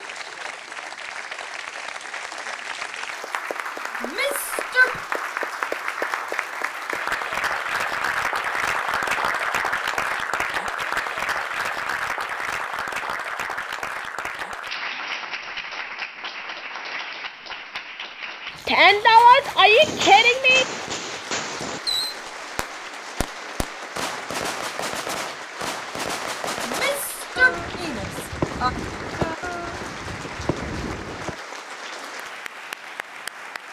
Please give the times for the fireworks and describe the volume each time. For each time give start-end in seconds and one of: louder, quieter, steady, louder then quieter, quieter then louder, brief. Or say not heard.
19.8-31.4 steady.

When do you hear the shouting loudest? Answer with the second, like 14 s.
19 s.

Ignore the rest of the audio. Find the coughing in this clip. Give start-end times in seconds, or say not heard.
not heard.